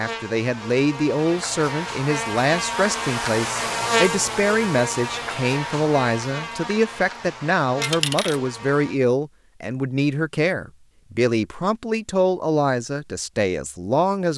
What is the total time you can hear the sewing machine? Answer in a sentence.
The sewing machine can't be heard in this clip.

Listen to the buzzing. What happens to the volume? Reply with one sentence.
The volume of the buzzing goes up, then down.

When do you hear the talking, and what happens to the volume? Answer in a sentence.
The talking can be heard from 0.0 to 14.3 s, at a steady volume.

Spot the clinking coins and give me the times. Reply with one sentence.
The clinking coins can be heard from 7.8 to 8.4 s.